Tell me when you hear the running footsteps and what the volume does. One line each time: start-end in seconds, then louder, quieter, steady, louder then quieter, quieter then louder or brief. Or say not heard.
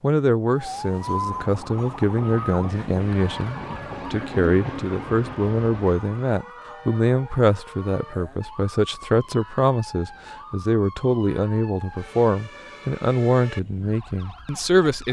not heard.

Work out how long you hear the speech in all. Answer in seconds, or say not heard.
15 s.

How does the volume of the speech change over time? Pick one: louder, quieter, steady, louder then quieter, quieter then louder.
steady.